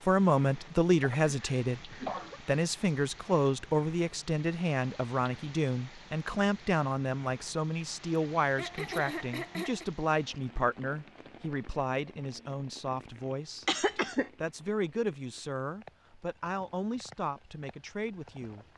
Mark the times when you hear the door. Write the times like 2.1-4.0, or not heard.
not heard.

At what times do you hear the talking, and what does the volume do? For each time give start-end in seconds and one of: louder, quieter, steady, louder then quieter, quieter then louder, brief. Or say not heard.
0.1-1.8 brief
2.5-18.6 quieter.